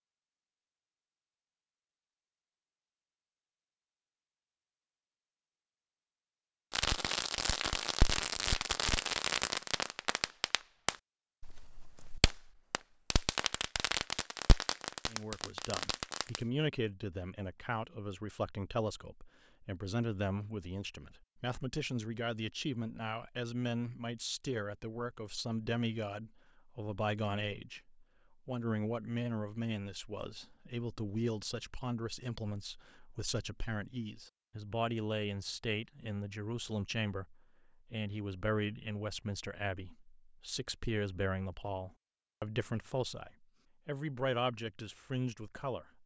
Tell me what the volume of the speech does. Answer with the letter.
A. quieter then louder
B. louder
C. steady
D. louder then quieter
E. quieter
C.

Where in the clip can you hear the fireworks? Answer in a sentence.
The fireworks can be heard from 6.7 to 16.4 s.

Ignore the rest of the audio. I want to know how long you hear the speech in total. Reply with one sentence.
The speech can be heard for 31 seconds in total.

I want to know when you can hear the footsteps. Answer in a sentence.
You can't hear the footsteps here.